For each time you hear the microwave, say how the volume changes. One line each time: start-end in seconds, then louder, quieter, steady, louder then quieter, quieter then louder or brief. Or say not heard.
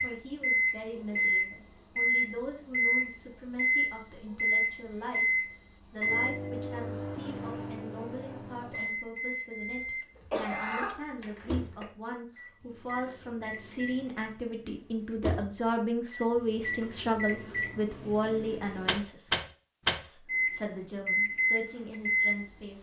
0.0-22.7 quieter then louder.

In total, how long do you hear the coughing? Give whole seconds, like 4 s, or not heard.
2 s.